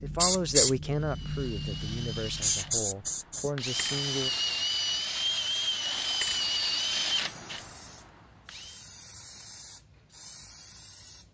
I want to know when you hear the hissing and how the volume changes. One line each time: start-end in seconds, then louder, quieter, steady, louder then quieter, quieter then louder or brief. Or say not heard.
0.0-11.3 quieter.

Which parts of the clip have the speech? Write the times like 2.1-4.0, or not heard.
0.0-4.3.